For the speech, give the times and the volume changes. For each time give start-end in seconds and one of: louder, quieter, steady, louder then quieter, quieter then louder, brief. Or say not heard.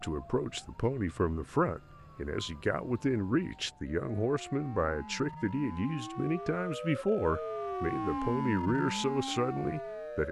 0.0-10.2 steady.